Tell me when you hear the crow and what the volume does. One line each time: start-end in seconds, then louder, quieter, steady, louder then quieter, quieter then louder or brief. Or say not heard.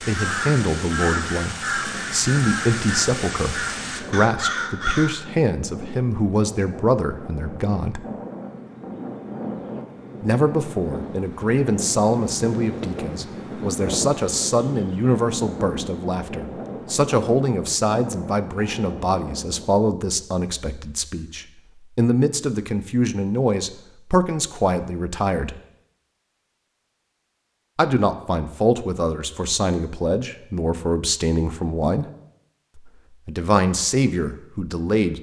0.0-5.2 steady.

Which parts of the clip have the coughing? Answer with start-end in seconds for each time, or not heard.
not heard.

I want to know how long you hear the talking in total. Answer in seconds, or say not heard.
30 s.